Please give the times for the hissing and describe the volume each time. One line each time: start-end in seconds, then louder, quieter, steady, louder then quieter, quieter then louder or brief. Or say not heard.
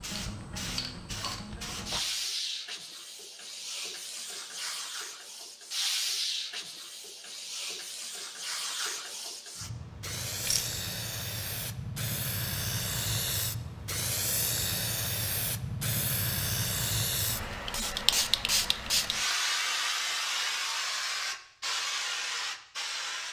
0.0-23.2 louder.